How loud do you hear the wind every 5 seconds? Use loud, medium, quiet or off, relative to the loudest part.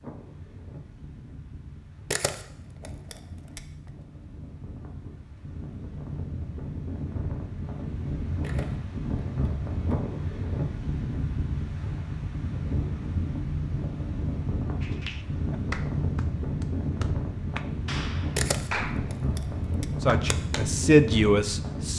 quiet, loud, loud, loud, loud.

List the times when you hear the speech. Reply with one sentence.
The speech can be heard from 20.0 to 21.9 s.